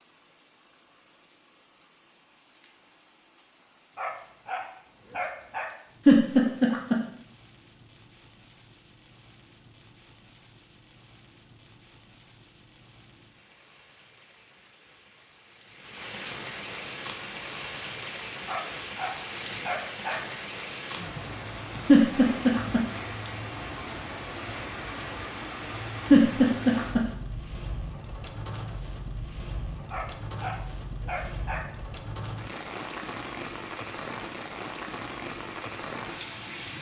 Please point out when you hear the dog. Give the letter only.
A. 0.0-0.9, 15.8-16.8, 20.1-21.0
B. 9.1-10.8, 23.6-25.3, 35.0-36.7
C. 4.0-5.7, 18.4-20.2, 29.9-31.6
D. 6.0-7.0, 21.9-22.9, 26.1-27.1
C.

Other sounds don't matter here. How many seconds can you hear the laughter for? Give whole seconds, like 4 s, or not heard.
3 s.